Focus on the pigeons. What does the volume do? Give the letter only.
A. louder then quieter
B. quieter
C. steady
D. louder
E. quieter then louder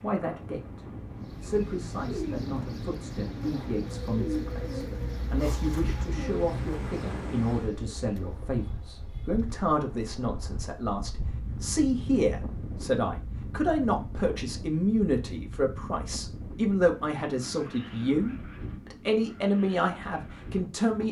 B.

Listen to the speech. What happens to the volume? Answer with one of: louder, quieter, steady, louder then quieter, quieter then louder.
louder.